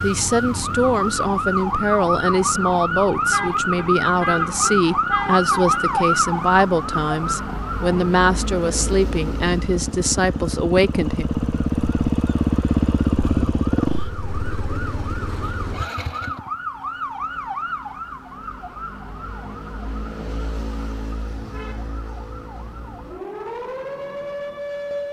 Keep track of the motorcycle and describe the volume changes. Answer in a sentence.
The loudness of the motorcycle goes up.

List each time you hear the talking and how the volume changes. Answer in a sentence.
The talking can be heard from 0.0 to 11.2 s, at a steady volume.